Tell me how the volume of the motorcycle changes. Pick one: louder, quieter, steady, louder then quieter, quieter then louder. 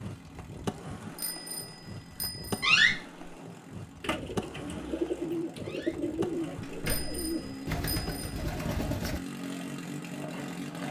louder.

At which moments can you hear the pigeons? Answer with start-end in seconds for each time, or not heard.
4.0-9.2.